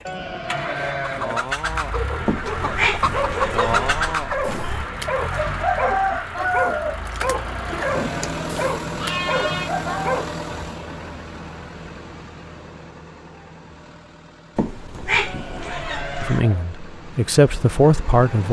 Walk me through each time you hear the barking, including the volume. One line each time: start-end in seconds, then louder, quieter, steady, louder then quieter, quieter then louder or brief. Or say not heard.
1.9-10.3 steady.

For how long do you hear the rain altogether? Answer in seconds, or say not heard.
not heard.